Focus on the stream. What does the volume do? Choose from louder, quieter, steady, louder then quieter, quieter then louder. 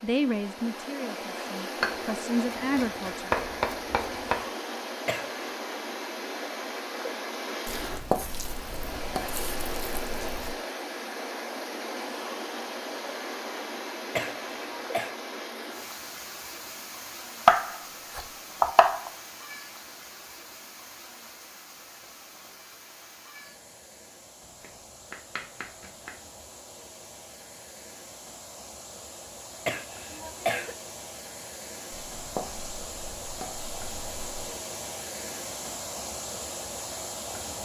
quieter then louder.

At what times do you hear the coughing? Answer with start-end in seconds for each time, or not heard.
5.0-5.5, 14.2-15.1, 29.6-30.8.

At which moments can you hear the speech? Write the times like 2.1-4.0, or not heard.
0.0-3.3.